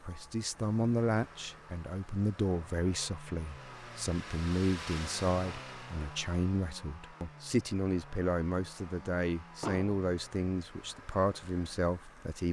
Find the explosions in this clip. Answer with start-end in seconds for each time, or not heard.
9.6-10.0.